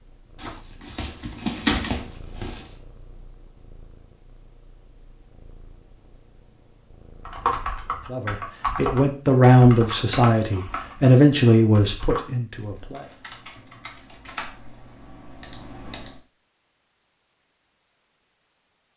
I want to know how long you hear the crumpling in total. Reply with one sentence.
The crumpling can be heard for 2 seconds in total.